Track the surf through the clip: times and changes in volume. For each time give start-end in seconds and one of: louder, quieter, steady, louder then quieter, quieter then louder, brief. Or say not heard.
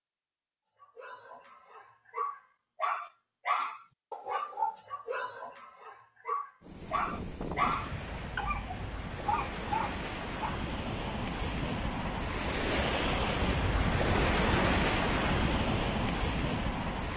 6.6-17.1 louder.